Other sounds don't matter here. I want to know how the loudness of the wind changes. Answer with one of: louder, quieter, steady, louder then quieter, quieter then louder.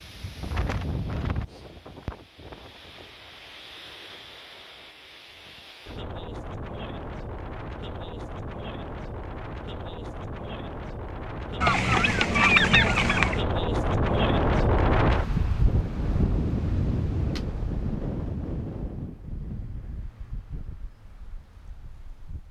louder then quieter.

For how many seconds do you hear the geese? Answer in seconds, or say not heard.
2 s.